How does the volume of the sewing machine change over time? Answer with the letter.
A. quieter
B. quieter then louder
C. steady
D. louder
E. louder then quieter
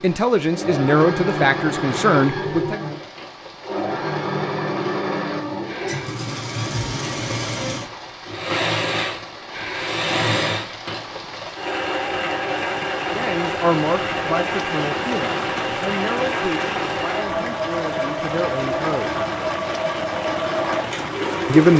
C.